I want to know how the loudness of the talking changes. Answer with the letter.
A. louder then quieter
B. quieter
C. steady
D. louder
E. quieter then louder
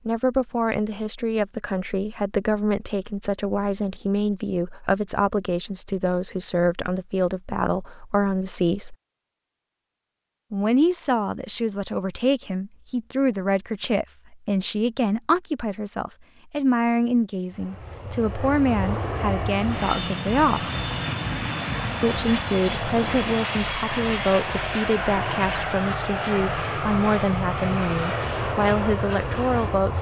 C.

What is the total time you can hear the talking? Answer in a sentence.
You can hear the talking for 27 seconds altogether.